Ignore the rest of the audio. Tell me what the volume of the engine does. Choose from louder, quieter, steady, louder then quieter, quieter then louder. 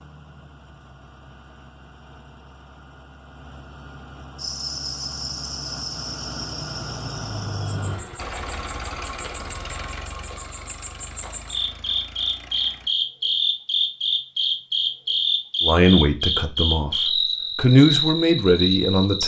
louder then quieter.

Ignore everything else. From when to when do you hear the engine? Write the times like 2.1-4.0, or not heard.
0.0-12.9.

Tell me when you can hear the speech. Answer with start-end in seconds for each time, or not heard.
15.6-19.2.